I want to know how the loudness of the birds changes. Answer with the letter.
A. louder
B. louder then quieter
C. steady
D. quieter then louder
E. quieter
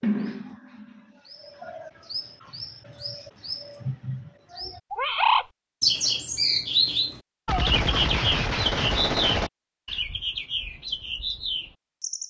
B.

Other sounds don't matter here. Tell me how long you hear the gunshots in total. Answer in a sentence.
You can hear the gunshots for 2 seconds altogether.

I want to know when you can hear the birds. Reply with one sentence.
The birds can be heard from 0.0 to 12.2 s.